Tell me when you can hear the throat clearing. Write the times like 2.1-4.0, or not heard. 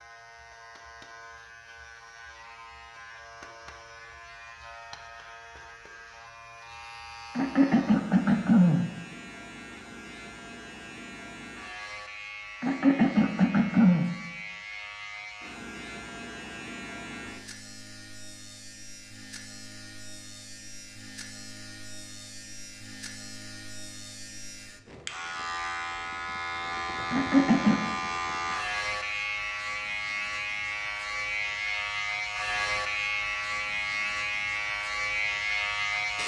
7.3-8.8, 12.6-14.1, 27.1-27.8.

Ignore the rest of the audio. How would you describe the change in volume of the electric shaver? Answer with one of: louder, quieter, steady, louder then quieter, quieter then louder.
louder.